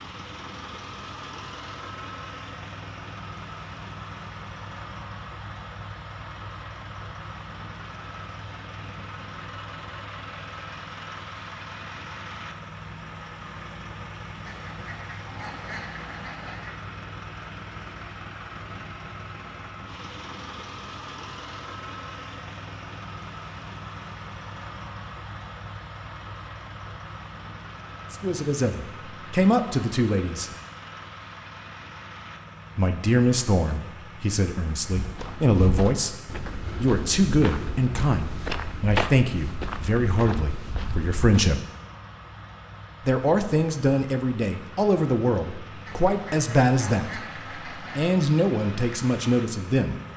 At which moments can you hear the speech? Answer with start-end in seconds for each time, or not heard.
28.1-30.5, 32.8-41.6, 43.0-50.0.